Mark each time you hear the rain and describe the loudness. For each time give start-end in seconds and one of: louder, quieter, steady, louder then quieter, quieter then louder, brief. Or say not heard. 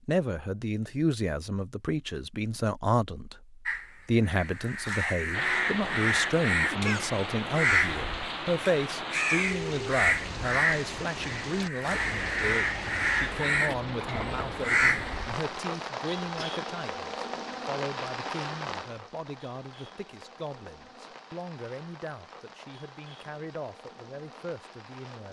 5.3-25.2 quieter.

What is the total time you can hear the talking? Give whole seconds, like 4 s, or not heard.
25 s.